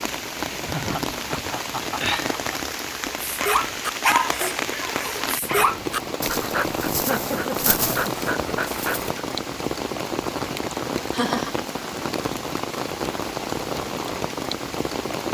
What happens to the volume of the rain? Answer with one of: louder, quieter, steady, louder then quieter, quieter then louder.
steady.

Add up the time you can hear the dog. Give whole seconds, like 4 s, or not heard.
6 s.